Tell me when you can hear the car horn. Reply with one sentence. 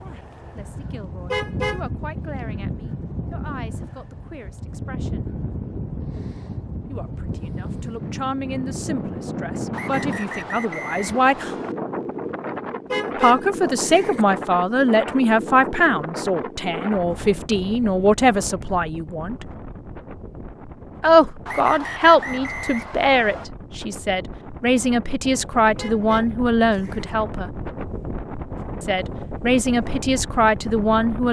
The car horn can be heard from 1.3 to 1.9 s, from 12.9 to 14.2 s and from 25.8 to 27.1 s.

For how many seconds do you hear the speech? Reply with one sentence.
The speech can be heard for 25 seconds in total.